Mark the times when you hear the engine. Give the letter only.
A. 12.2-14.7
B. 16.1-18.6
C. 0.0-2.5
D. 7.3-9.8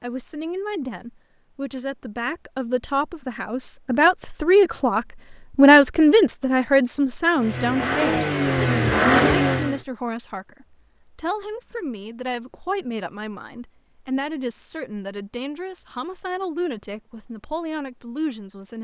D.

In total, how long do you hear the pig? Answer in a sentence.
The pig can't be heard in this clip.